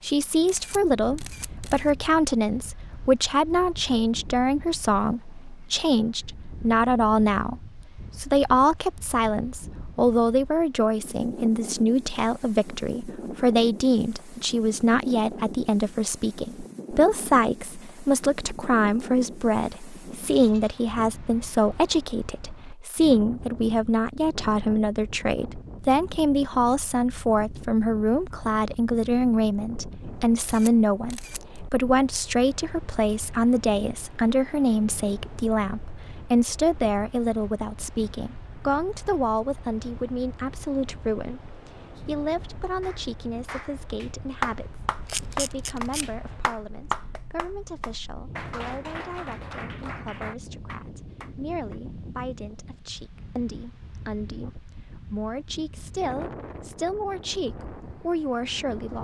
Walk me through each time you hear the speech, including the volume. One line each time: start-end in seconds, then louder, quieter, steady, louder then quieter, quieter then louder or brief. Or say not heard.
0.0-58.9 quieter.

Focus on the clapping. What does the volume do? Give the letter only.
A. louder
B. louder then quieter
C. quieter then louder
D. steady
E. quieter
E.